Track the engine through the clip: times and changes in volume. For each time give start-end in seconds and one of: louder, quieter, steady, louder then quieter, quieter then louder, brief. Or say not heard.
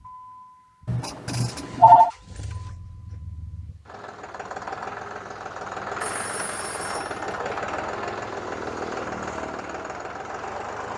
0.0-10.9 louder.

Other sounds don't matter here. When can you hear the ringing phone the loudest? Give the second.
2 s.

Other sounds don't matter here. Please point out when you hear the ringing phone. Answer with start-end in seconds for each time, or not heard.
0.8-2.1, 6.0-7.5.